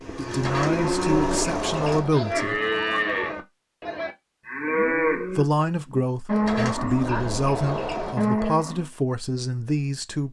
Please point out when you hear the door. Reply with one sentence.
You can hear the door from 0.4 to 2.1 s and from 6.4 to 8.2 s.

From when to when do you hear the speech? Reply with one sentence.
You can hear the speech from 0.1 to 2.6 s and from 5.1 to 10.2 s.